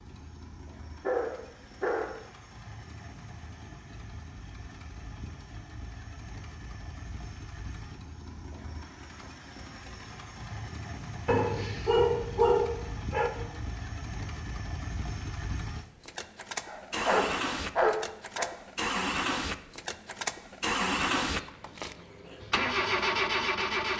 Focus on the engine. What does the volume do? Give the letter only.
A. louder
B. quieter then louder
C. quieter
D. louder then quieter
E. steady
A.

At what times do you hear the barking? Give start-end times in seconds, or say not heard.
1.0-2.1, 11.2-13.3, 16.6-18.5.